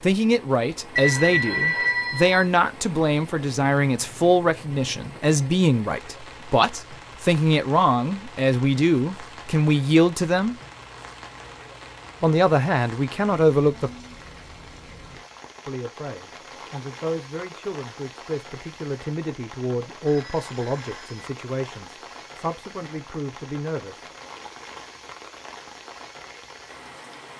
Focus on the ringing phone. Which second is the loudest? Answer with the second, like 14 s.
2 s.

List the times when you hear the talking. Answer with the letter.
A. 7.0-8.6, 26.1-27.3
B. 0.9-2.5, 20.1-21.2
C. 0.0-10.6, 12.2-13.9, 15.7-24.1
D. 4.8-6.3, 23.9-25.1
C.